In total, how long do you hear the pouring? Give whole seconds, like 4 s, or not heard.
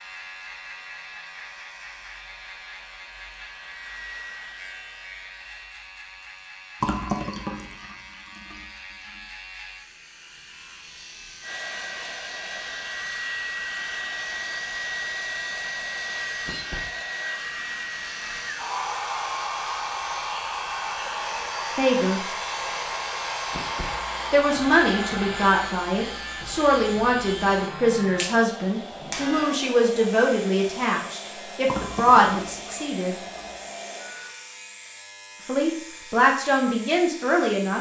4 s.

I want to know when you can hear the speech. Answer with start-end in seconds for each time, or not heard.
21.8-22.2, 24.3-33.1, 35.5-37.7.